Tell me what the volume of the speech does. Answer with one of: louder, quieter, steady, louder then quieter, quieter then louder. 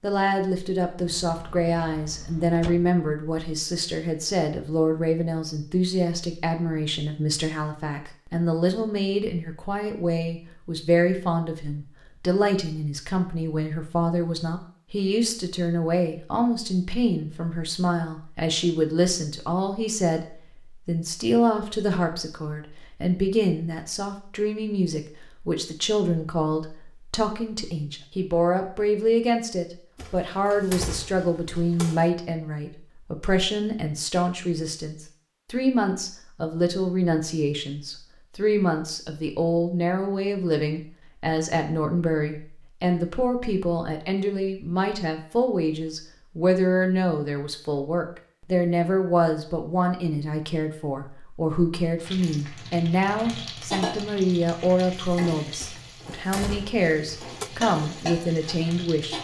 steady.